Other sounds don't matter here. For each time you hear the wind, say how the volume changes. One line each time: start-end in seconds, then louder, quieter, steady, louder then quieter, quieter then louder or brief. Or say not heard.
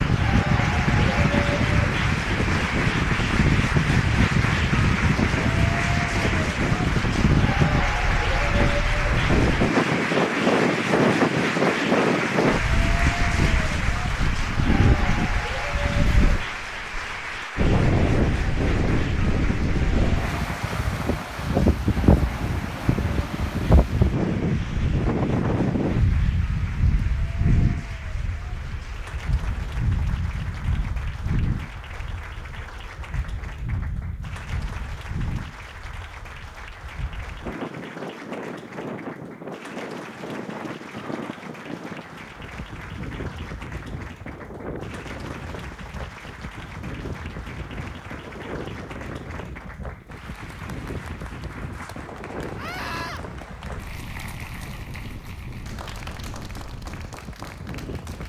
0.0-58.2 quieter.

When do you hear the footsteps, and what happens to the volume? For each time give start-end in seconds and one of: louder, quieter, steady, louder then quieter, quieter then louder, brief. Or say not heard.
not heard.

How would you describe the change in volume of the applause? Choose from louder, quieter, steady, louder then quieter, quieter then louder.
quieter.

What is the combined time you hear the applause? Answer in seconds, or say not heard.
58 s.